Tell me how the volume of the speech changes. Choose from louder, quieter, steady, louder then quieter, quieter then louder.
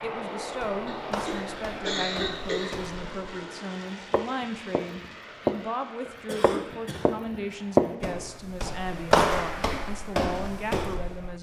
steady.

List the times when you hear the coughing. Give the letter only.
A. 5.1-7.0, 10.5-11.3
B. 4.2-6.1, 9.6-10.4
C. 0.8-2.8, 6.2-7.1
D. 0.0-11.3
C.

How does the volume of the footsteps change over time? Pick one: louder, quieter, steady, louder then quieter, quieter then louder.
louder then quieter.